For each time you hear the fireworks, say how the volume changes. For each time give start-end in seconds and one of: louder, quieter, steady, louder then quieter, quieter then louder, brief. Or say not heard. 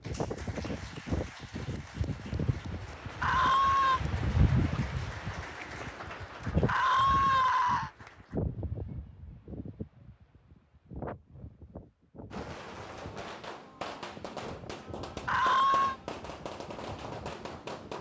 12.3-17.9 steady.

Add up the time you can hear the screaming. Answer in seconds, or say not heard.
3 s.